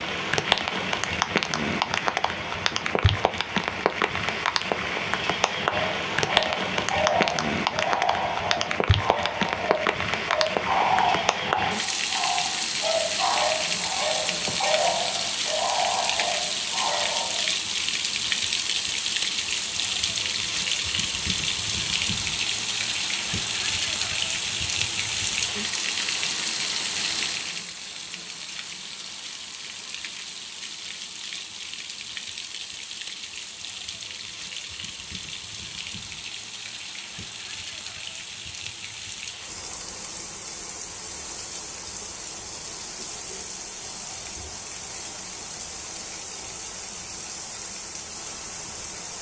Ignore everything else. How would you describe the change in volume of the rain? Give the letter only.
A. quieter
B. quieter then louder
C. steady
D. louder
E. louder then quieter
A.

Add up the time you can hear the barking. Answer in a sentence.
The barking can be heard for 12 seconds in total.